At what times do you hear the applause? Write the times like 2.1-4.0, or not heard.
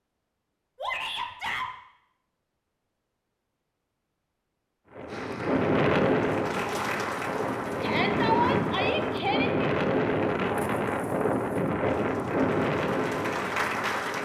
5.0-9.2, 11.8-14.2.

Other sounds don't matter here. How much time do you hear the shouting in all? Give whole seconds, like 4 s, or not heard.
3 s.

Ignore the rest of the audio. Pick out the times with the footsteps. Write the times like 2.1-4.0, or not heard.
not heard.